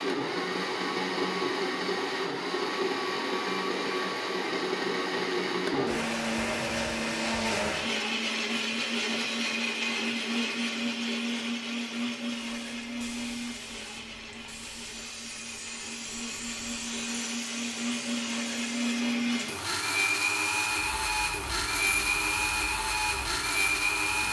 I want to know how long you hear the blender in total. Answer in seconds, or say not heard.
24 s.